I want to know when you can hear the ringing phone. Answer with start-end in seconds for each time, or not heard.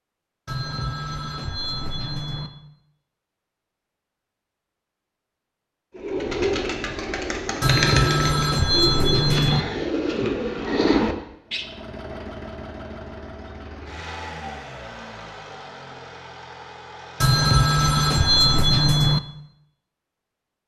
0.5-2.5, 7.6-9.7, 17.2-19.2.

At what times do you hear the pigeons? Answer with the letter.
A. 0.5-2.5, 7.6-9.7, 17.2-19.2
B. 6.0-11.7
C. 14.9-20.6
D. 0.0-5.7
B.